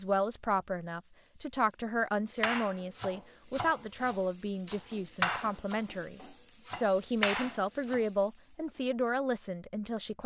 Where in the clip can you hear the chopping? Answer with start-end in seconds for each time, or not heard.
2.4-5.8, 6.6-8.1.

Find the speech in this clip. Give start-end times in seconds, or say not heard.
0.0-10.2.